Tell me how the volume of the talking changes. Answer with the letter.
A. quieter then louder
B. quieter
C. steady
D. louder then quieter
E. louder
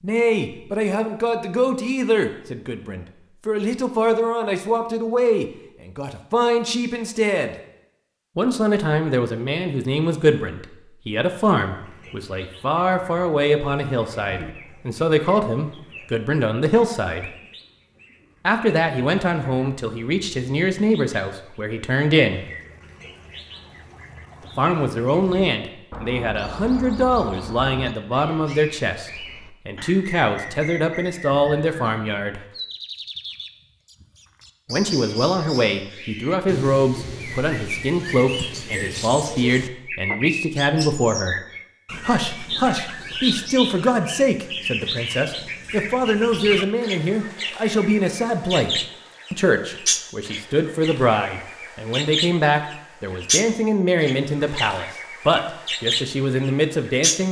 C.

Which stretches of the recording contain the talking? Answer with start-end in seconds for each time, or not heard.
0.0-7.5, 8.3-17.3, 18.4-22.4, 24.6-32.4, 34.7-41.4, 42.0-57.2.